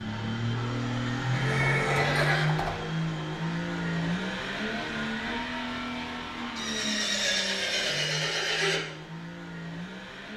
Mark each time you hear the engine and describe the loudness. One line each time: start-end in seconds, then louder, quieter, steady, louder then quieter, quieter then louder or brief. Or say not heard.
0.0-10.3 quieter.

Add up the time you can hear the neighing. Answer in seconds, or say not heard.
4 s.